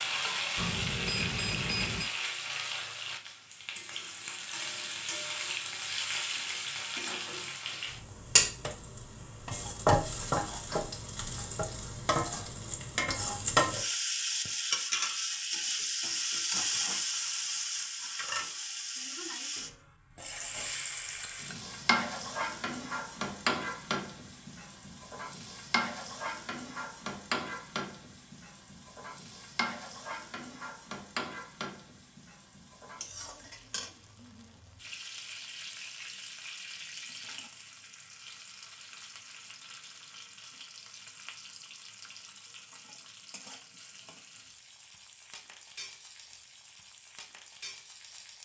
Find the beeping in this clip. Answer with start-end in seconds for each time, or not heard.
0.6-2.1.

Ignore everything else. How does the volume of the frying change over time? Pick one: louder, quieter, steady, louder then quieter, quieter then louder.
quieter.